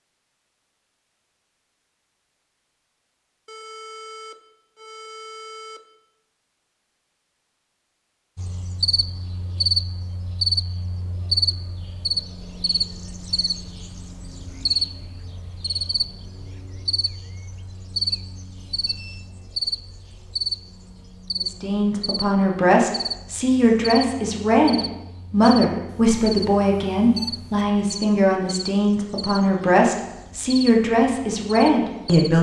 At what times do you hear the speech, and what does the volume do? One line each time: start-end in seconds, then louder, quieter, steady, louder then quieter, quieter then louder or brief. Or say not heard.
21.4-32.3 steady.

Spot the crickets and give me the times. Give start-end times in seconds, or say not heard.
8.3-32.3.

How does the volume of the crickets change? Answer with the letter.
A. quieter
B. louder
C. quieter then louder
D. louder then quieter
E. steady
A.